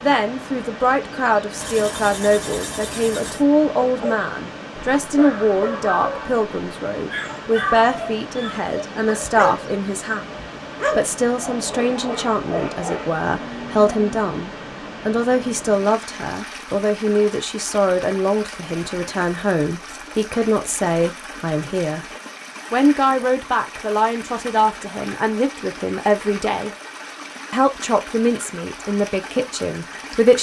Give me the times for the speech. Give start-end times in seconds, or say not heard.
0.0-10.2, 10.9-22.1, 22.7-26.7, 27.5-30.3.